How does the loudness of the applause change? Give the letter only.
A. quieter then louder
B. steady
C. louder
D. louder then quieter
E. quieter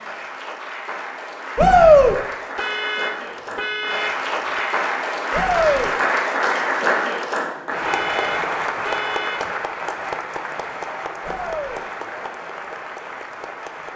D.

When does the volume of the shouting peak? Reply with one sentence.
The loudest moment of the shouting is at 2 seconds.